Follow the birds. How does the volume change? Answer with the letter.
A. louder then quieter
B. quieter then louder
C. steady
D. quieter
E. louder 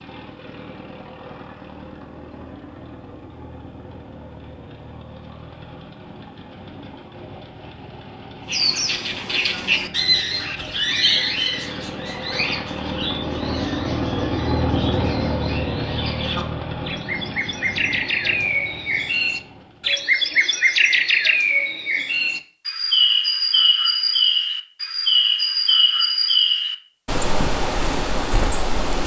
B.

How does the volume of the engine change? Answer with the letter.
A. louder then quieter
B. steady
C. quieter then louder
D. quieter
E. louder
A.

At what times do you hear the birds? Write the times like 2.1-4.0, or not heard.
8.4-29.0.